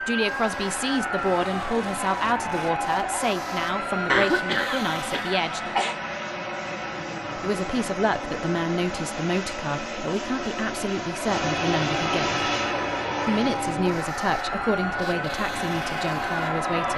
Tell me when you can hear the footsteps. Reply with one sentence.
You can't hear the footsteps here.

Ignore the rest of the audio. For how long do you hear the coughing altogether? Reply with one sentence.
The coughing can be heard for 2 seconds in total.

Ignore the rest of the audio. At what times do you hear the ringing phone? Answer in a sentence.
You can't hear the ringing phone here.